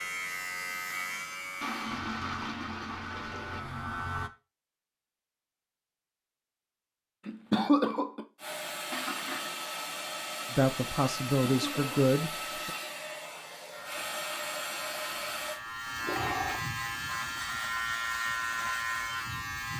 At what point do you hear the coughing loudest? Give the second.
8 s.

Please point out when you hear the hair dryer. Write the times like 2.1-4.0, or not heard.
8.3-15.6.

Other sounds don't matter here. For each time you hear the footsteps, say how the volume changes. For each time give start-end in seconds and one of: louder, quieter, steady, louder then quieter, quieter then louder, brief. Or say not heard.
not heard.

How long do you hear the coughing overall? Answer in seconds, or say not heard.
2 s.